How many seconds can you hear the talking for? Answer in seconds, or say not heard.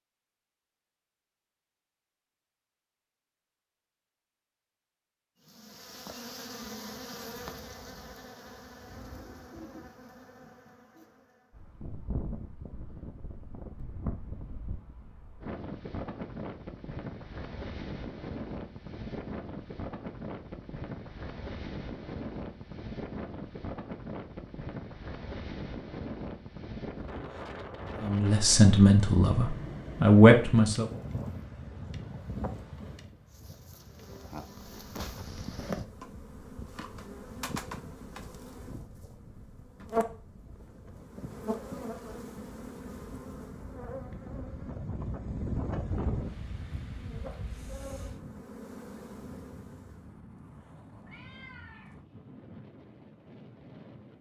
3 s.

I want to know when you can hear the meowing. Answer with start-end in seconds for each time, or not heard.
51.0-52.0.